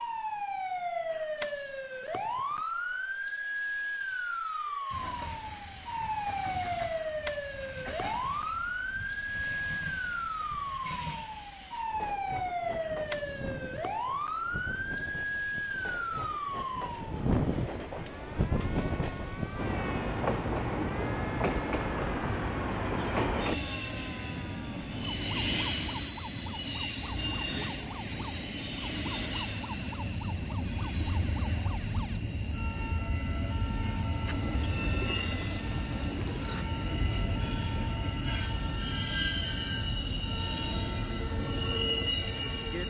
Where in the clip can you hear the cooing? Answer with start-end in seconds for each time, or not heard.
34.2-36.6.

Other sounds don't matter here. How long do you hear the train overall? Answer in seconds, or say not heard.
38 s.